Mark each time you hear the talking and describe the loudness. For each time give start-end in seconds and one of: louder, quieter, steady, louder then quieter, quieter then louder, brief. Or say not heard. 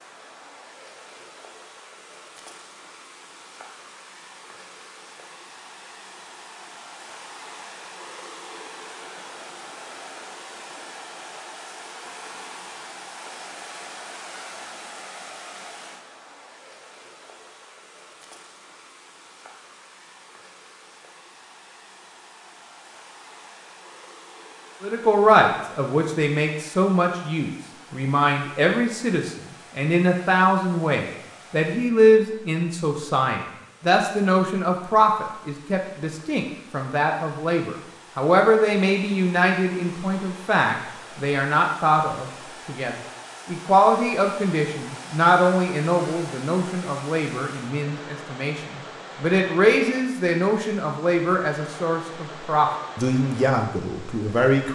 24.8-54.6 steady.